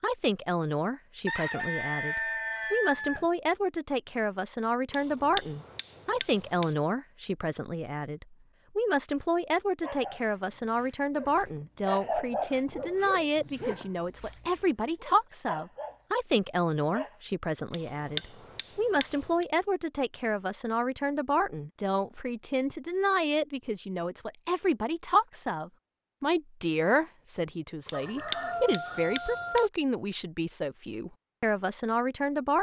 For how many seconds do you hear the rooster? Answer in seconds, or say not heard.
4 s.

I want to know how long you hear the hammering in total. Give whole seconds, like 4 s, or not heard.
5 s.